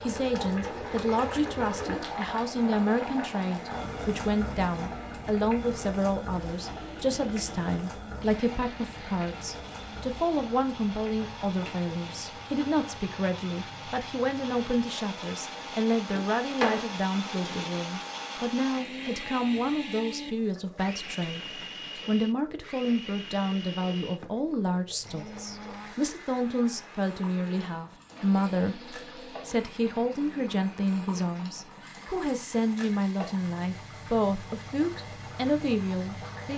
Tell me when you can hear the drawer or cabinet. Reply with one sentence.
The drawer or cabinet can be heard from 16.1 to 17.8 s.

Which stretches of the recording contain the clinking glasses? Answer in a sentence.
You can't hear the clinking glasses here.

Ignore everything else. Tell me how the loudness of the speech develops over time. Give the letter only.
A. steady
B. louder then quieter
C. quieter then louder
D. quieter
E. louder
A.